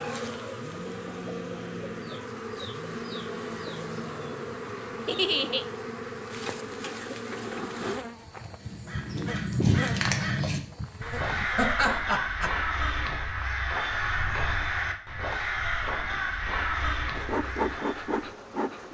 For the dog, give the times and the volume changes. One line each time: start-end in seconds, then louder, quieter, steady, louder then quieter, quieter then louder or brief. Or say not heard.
not heard.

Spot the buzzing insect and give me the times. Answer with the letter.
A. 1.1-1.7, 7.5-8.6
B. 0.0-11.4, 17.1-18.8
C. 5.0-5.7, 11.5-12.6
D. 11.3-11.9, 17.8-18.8
B.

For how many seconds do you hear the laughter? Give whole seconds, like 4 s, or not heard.
2 s.